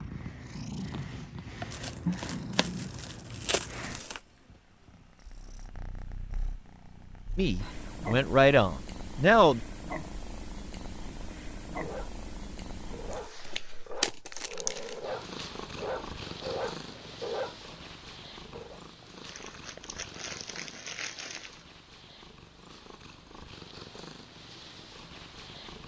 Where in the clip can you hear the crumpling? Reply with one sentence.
You can hear the crumpling from 1.7 to 4.2 s, from 13.3 to 14.9 s and from 19.2 to 21.6 s.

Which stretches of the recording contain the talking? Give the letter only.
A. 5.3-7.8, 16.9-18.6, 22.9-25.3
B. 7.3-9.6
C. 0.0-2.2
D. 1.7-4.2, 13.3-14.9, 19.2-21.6
B.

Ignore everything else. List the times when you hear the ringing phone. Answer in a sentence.
The ringing phone can't be heard in this clip.